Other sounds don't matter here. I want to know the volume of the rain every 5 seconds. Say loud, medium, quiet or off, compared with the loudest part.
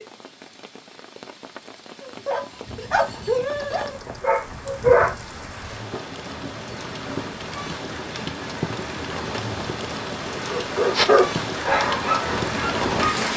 quiet, medium, loud.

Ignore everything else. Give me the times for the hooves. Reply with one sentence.
You can hear the hooves from 2.6 to 13.2 s.